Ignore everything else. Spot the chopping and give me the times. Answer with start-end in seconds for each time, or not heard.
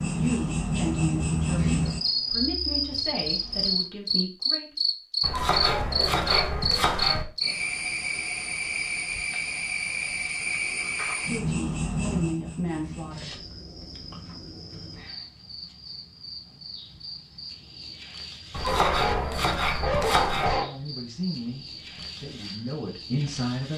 5.2-7.2, 18.5-20.6.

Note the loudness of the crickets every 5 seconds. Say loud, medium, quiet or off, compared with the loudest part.
loud, loud, medium, quiet, quiet.